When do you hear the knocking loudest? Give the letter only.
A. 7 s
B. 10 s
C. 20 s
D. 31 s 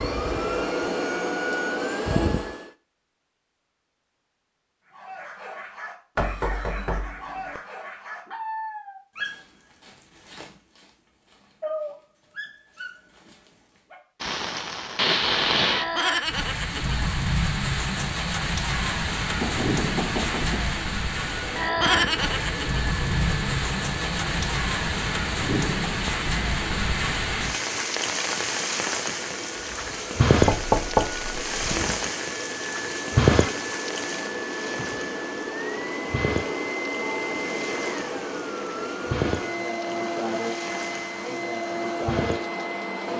D.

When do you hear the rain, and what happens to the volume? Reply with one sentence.
You can hear the rain from 14.2 to 43.1 s, getting quieter.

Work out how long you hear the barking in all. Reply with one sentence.
The barking can be heard for 9 seconds in total.